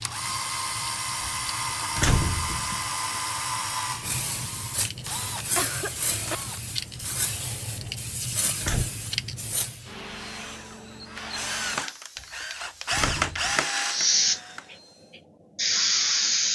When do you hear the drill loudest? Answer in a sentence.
The loudest moment of the drill is at 13 seconds.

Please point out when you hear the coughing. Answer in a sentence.
The coughing can be heard from 5.5 to 6.4 s.